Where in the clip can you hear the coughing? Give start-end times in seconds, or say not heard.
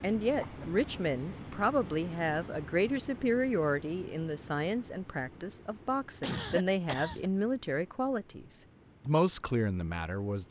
0.3-0.8, 6.2-7.3.